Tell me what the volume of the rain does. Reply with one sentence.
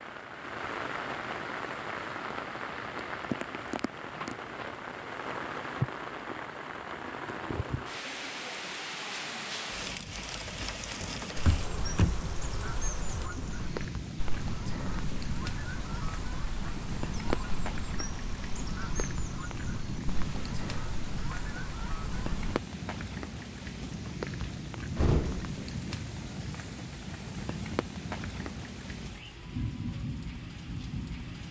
The volume of the rain stays about the same.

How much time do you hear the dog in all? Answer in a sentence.
You can't hear the dog here.